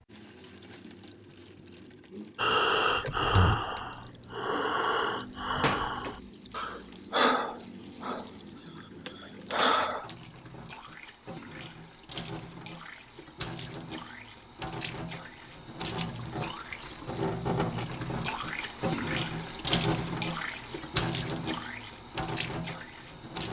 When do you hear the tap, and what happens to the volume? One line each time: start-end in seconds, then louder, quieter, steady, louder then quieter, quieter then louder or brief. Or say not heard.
0.0-23.4 louder.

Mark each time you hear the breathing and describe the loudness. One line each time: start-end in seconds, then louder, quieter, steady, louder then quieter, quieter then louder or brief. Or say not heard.
2.4-8.3 quieter then louder
9.1-10.1 brief.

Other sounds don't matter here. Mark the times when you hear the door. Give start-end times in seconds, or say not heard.
5.4-6.8.